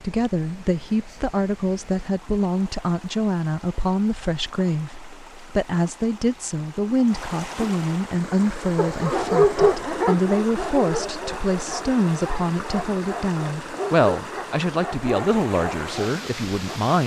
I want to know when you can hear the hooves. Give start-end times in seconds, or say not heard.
not heard.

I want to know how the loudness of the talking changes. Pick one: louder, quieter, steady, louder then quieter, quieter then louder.
steady.